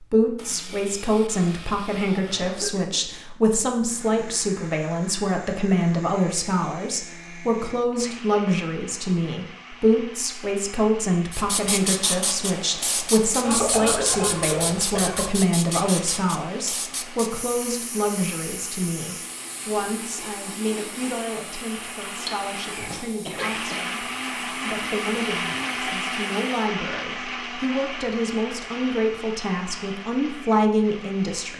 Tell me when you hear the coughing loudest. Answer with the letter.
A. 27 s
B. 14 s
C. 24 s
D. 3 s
B.